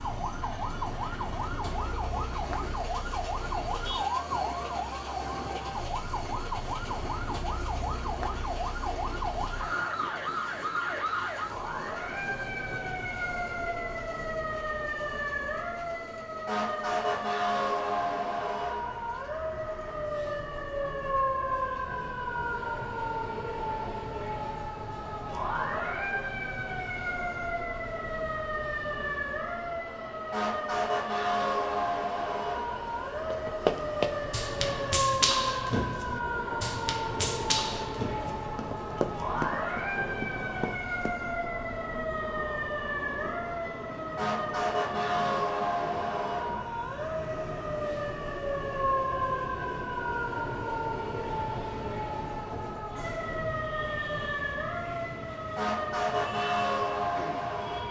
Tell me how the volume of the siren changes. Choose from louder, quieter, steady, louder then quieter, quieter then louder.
steady.